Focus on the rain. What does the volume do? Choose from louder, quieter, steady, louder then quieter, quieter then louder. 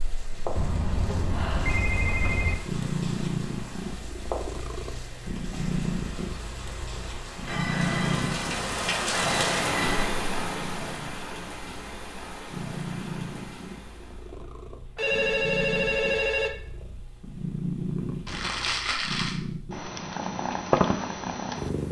louder then quieter.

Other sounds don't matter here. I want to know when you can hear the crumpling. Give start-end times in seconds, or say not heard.
18.2-19.4.